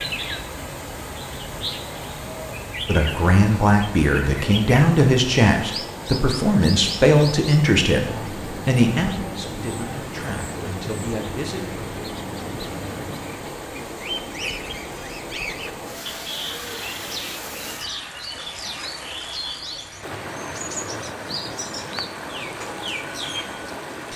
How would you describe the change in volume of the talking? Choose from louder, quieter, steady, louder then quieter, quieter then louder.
quieter.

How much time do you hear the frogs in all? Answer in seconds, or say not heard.
not heard.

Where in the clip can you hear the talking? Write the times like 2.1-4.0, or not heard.
2.9-11.8.